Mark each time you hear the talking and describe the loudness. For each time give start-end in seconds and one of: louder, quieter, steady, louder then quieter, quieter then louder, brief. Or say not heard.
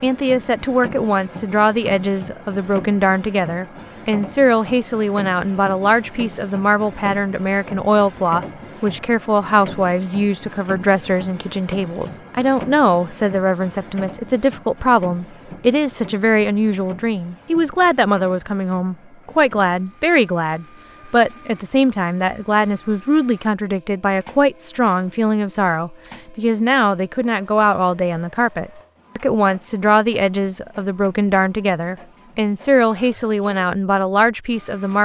0.0-35.0 steady.